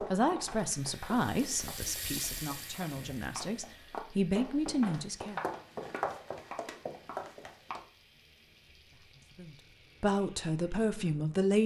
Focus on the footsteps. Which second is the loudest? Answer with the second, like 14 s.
6 s.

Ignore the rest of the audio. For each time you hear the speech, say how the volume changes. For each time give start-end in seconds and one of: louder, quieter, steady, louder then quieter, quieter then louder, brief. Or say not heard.
0.0-5.4 quieter then louder
8.9-11.6 brief.